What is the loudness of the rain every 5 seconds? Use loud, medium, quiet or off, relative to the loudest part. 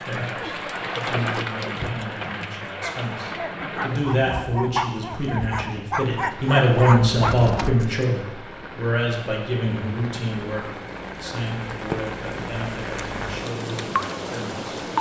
loud, medium, loud.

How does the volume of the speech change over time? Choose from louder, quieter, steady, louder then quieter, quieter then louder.
louder then quieter.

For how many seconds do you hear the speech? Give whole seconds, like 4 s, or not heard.
15 s.